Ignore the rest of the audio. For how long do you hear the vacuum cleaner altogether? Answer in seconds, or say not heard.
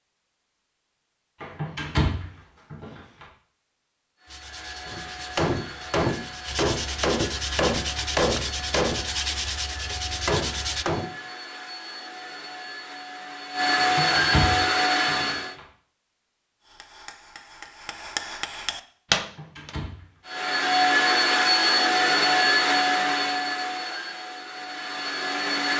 17 s.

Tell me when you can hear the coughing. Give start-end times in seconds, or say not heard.
not heard.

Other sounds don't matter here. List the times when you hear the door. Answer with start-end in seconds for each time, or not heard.
1.4-3.2, 13.8-15.6, 19.1-20.1.